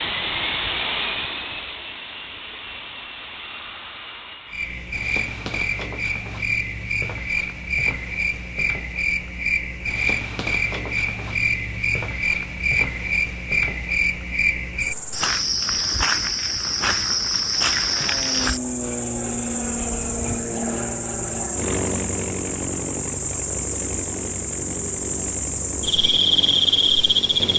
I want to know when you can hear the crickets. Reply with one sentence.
You can hear the crickets from 4.5 to 27.5 s.